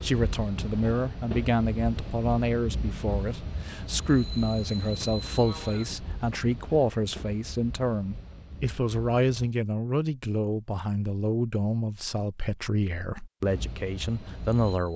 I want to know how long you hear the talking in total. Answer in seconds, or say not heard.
15 s.